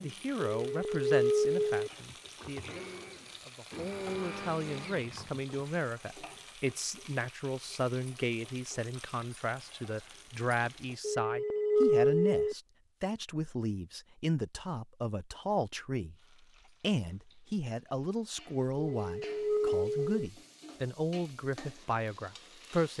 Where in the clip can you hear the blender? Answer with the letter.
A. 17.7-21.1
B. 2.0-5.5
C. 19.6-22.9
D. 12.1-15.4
B.